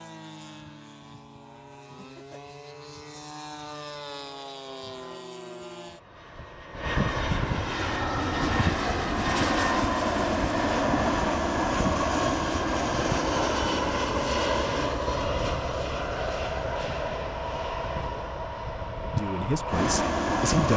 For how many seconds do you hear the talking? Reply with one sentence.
The talking can be heard for 2 seconds in total.